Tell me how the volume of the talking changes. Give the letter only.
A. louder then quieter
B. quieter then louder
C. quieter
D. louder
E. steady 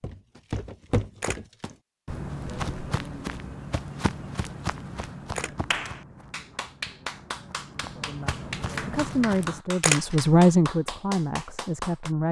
A.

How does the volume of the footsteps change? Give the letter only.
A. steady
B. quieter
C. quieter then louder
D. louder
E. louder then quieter
C.